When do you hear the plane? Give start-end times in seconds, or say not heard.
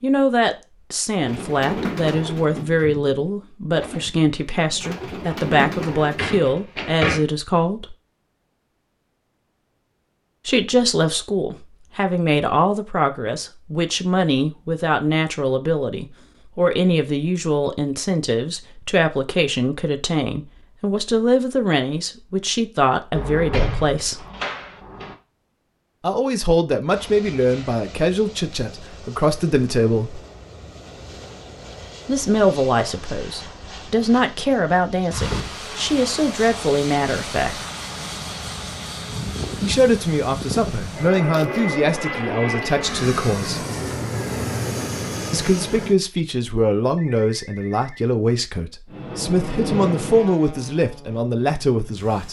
26.9-46.0, 48.9-52.2.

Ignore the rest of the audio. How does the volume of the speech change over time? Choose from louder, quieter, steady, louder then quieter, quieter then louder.
steady.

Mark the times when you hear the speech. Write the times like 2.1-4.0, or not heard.
0.0-8.0, 10.4-24.2, 26.0-30.2, 32.0-37.6, 39.6-43.6, 45.3-52.2.